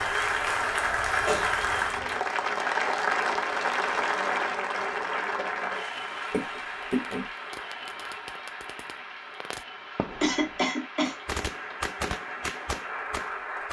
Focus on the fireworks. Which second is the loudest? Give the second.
12 s.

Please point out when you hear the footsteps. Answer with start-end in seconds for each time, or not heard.
not heard.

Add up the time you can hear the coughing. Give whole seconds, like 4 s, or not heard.
3 s.